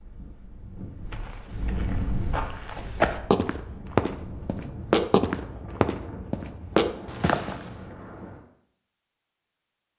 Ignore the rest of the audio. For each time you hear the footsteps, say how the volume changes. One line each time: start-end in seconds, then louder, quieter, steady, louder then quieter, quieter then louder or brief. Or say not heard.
1.1-7.8 louder.